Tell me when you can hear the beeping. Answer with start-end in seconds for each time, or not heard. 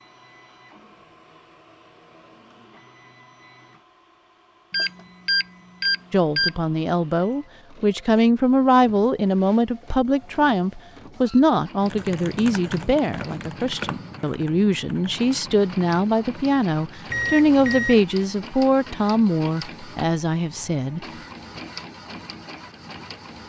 4.7-6.5, 17.1-18.1.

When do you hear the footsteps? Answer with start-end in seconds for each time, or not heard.
not heard.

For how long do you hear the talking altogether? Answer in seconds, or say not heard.
15 s.